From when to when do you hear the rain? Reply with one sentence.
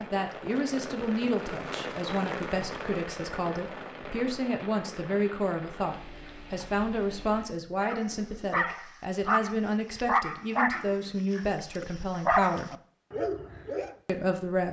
You can hear the rain from 0.0 to 7.5 s.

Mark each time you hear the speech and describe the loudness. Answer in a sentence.
The speech can be heard from 0.1 to 12.7 s, at a steady volume; and briefly from 14.1 to 14.6 s.